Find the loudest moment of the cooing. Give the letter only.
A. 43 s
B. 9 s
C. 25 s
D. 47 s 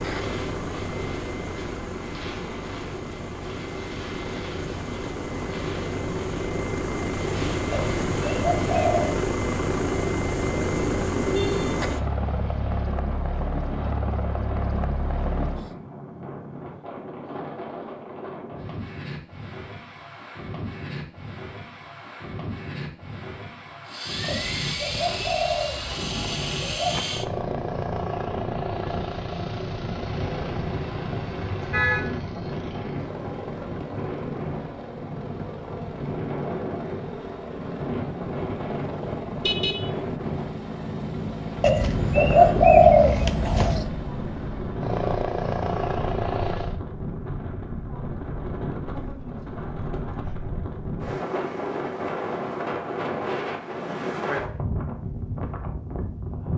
A.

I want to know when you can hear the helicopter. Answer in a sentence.
You can hear the helicopter from 0.0 to 15.7 s and from 23.9 to 46.8 s.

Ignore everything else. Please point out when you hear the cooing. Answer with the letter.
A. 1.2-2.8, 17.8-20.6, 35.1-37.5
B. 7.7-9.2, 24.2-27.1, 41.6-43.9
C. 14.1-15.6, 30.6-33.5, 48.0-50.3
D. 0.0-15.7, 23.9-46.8
B.